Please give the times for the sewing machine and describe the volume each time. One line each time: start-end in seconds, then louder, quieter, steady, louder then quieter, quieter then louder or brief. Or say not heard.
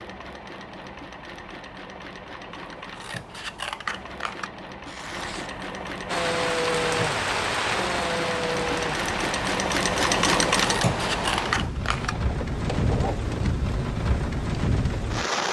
0.0-13.2 louder.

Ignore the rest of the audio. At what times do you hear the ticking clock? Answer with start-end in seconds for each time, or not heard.
not heard.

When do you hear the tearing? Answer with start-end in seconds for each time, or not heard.
4.8-5.5.